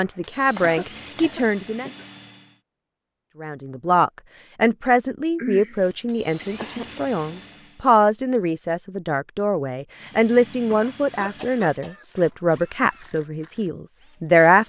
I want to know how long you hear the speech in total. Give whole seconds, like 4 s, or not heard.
13 s.